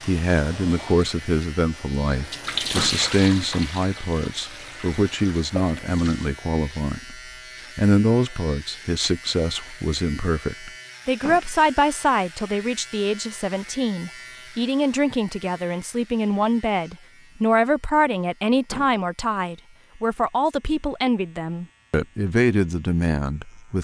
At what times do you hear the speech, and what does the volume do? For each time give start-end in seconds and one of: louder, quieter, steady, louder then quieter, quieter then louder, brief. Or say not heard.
0.1-23.7 steady.